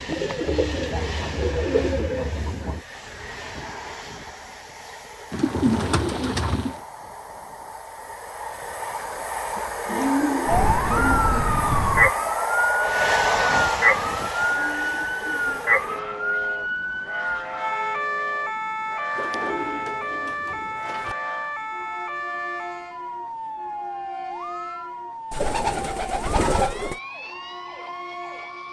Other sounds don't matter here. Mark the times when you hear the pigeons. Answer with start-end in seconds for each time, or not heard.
0.1-2.8, 5.3-6.8, 9.6-11.6, 14.3-16.1, 19.1-21.1, 25.3-26.9.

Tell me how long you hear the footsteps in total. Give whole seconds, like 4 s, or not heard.
not heard.